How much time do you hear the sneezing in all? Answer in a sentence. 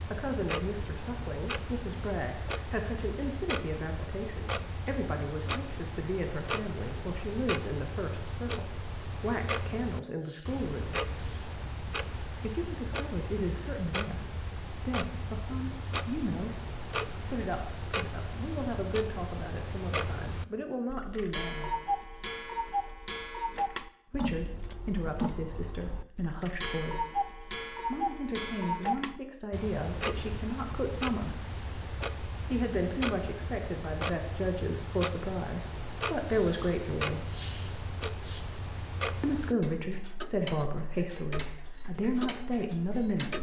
You can hear the sneezing for 5 seconds altogether.